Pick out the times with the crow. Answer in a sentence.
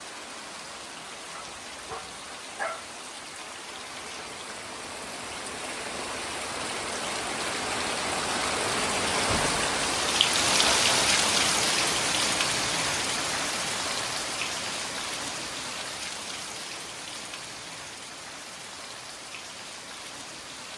You can't hear the crow here.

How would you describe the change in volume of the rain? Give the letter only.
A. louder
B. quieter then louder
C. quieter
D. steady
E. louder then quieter
E.